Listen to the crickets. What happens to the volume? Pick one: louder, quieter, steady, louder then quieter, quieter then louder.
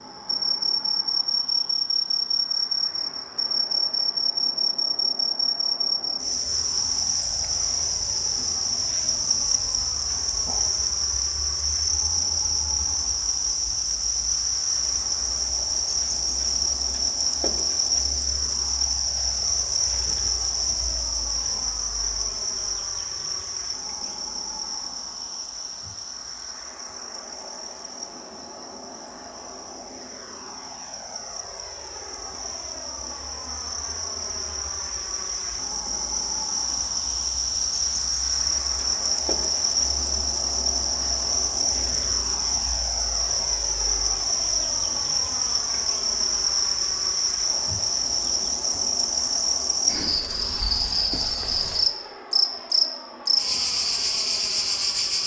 quieter then louder.